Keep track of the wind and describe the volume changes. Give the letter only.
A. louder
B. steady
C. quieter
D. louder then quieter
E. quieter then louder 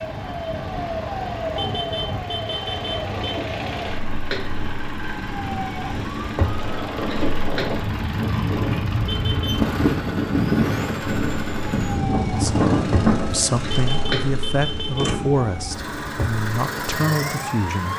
A.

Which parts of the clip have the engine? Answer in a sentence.
You can hear the engine from 0.0 to 17.9 s.